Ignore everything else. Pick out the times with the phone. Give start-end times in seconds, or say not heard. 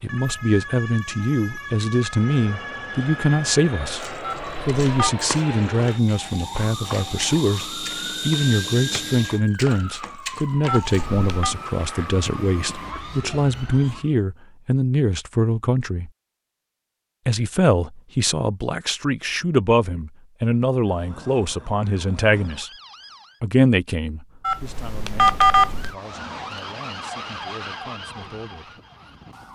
4.2-5.1, 10.7-11.6, 24.4-25.9.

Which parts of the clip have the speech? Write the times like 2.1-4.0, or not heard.
0.0-16.1, 17.2-22.7, 23.4-28.8.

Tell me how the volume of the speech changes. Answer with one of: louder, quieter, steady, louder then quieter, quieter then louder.
quieter.